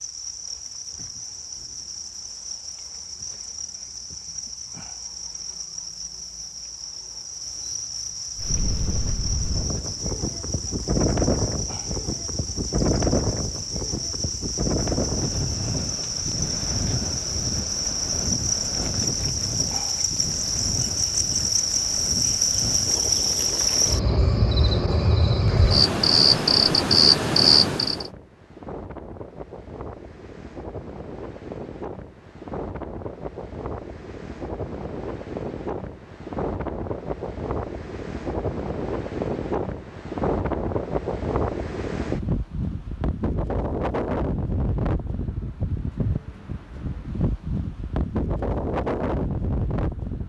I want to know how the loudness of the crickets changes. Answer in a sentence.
The loudness of the crickets goes up.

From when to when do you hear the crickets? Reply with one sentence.
You can hear the crickets from 0.0 to 28.1 s.